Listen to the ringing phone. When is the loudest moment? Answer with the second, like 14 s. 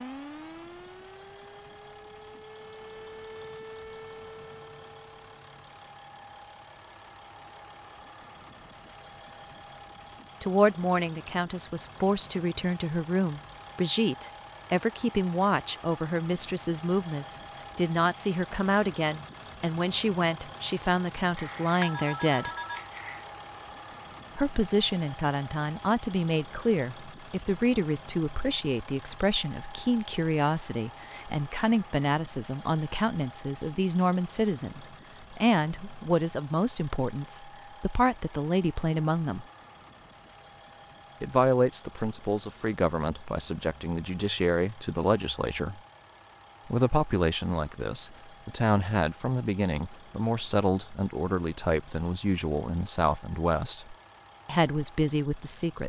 22 s.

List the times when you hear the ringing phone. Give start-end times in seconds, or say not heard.
21.4-23.2.